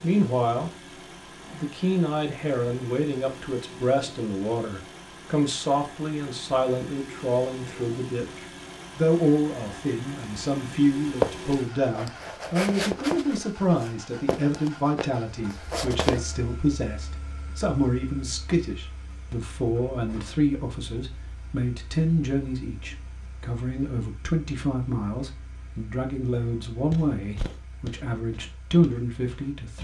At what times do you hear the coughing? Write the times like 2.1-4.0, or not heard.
not heard.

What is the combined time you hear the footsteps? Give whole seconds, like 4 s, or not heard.
8 s.